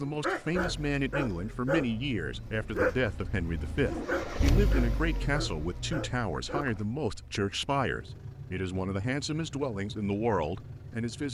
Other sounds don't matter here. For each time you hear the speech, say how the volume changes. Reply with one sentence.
The speech can be heard from 0.0 to 11.2 s, at a steady volume.